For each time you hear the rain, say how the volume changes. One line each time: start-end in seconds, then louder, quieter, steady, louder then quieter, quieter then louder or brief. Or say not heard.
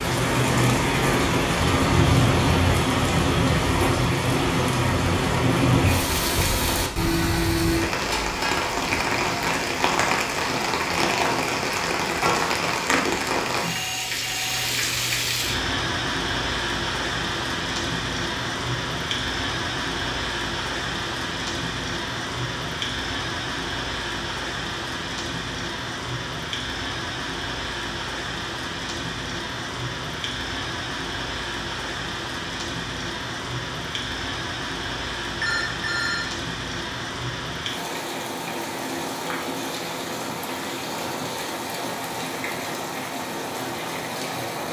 0.0-44.6 quieter.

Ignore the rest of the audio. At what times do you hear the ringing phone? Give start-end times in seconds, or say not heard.
13.6-14.7, 35.4-36.2.